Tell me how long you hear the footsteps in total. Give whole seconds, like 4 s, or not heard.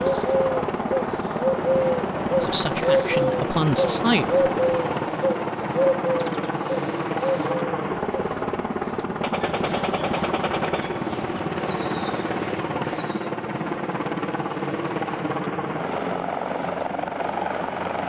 not heard.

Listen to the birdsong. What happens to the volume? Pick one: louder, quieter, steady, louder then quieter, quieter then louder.
quieter.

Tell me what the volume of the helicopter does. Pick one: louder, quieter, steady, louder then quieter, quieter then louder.
steady.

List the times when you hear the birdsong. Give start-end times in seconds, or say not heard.
0.0-13.3.